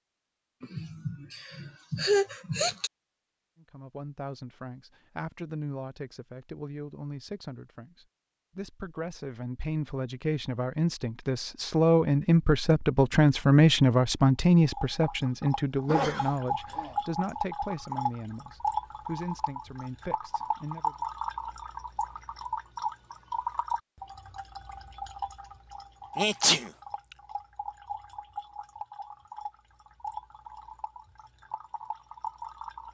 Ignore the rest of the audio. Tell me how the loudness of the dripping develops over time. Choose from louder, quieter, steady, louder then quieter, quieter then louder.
quieter.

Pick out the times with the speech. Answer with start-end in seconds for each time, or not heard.
3.6-20.9.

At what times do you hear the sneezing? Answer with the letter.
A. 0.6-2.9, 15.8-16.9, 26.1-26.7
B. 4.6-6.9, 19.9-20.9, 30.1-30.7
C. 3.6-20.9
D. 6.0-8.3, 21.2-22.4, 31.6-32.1
A.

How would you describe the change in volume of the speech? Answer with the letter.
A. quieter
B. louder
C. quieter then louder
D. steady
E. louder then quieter
E.